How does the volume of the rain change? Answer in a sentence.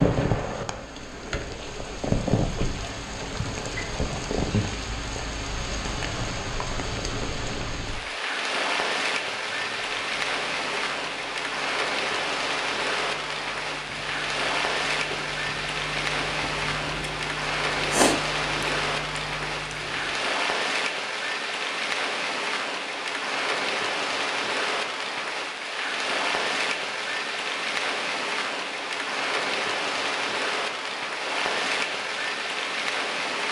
The loudness of the rain stays about the same.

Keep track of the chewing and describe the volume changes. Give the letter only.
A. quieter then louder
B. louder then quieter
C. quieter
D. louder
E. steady
D.